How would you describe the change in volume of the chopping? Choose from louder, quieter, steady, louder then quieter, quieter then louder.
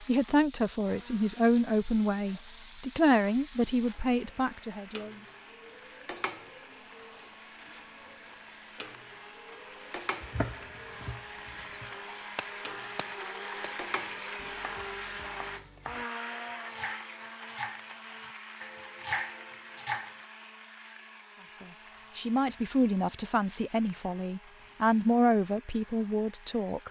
quieter then louder.